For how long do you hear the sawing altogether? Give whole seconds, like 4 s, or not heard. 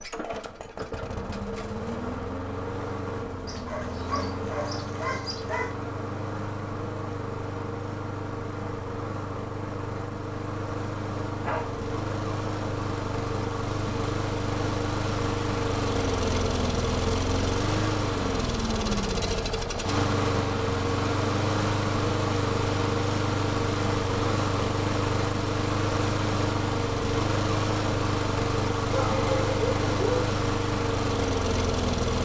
not heard.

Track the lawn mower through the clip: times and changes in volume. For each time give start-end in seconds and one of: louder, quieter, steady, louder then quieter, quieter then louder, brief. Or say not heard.
0.0-32.2 louder.